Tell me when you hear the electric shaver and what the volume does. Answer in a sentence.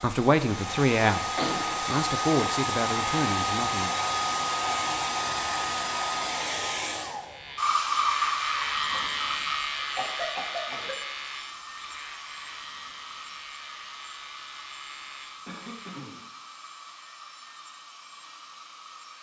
The electric shaver can be heard from 7.2 to 16.0 s, getting quieter.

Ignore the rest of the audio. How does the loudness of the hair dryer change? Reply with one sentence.
The volume of the hair dryer goes down.